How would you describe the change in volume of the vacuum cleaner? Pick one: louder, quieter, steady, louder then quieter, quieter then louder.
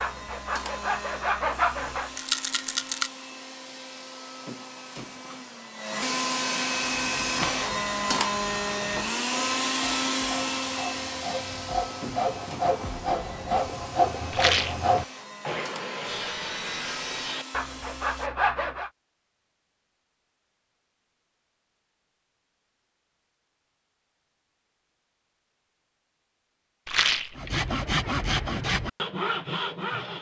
louder then quieter.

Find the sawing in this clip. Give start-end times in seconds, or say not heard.
0.0-2.1, 6.9-18.9, 27.4-30.1.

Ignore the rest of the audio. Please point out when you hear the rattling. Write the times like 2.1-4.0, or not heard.
2.1-3.1, 14.3-14.8, 26.9-27.4.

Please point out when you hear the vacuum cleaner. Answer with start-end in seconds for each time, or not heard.
0.0-18.3.